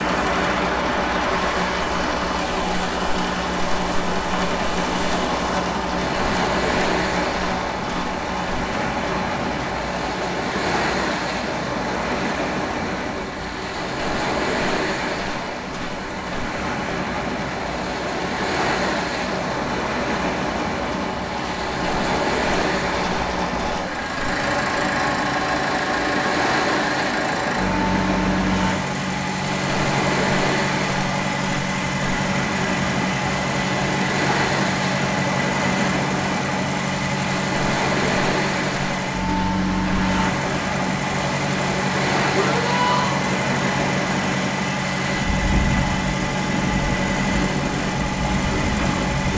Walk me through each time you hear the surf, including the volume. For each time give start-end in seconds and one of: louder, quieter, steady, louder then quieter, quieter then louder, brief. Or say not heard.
0.0-49.3 steady.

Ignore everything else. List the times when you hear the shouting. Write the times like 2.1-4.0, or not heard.
42.4-43.2.